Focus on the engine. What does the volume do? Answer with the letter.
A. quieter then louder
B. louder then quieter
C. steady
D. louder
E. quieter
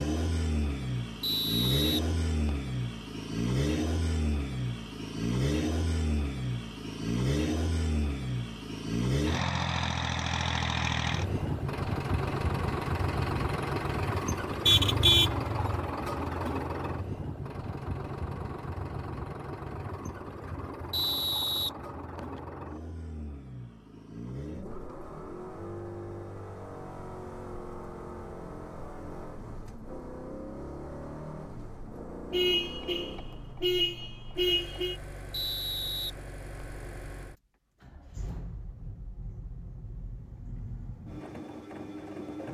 E.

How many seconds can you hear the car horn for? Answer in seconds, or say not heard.
4 s.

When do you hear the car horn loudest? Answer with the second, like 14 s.
15 s.